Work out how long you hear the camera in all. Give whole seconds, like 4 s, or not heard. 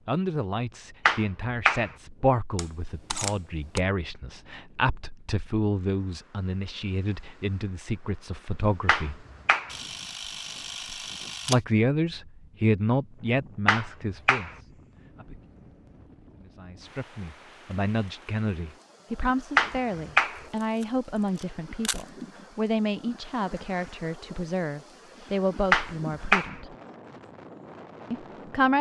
5 s.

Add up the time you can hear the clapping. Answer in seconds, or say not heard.
4 s.